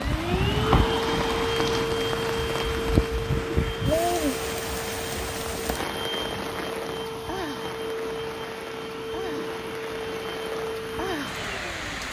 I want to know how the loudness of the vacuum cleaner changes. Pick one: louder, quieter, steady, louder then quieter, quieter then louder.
quieter.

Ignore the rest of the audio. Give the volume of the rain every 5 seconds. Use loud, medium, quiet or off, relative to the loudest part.
loud, medium, medium.